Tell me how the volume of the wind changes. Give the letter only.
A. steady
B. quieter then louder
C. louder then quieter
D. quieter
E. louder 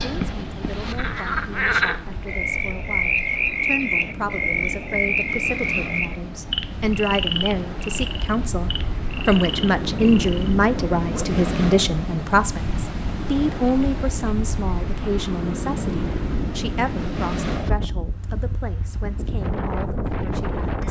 E.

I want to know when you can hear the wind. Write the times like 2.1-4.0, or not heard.
0.0-20.8.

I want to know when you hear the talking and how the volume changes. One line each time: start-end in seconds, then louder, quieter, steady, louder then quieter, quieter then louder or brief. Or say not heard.
0.1-20.8 louder then quieter.